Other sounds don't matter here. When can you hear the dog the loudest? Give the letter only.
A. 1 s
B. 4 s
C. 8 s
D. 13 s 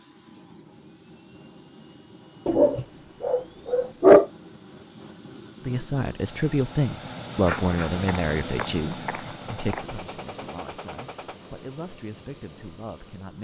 B.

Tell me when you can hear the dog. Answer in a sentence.
You can hear the dog from 2.5 to 4.2 s and from 7.5 to 9.8 s.